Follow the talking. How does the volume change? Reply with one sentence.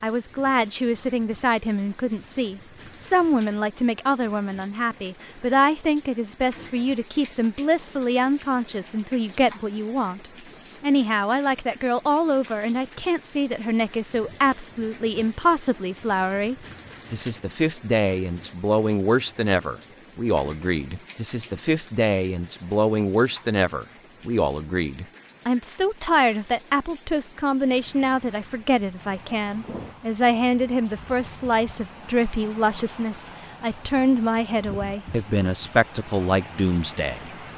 The loudness of the talking stays about the same.